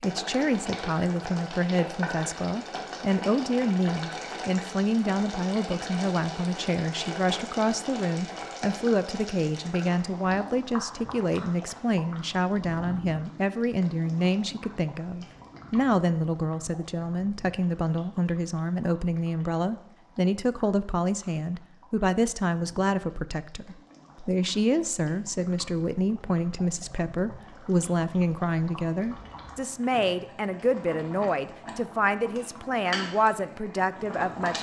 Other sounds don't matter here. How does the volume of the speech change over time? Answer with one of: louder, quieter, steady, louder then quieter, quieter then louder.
steady.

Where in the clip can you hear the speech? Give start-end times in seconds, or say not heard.
0.0-34.5.